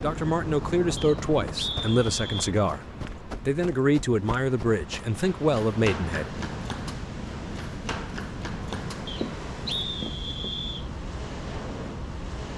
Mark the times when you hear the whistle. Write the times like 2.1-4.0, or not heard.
0.9-2.5, 9.1-10.8.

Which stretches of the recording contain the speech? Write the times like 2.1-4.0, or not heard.
0.0-6.4.